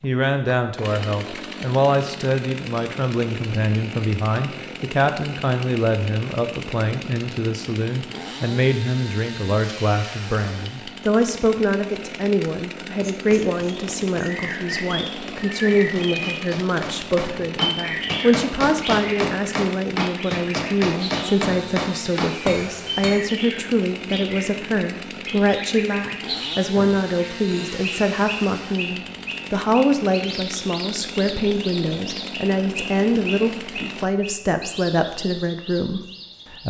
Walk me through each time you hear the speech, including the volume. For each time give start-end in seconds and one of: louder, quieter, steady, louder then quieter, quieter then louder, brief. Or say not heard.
0.0-36.6 steady.